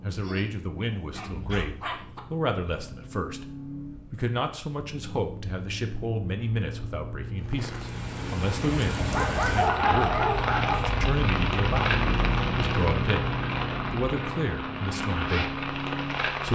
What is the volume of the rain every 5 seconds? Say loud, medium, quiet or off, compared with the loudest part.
off, loud, loud, loud.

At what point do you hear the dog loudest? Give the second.
10 s.